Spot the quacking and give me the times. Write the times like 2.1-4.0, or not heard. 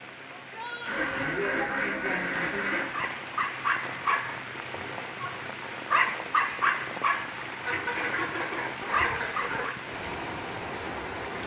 0.8-3.0, 7.6-9.7.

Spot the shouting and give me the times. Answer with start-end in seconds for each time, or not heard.
0.3-1.4.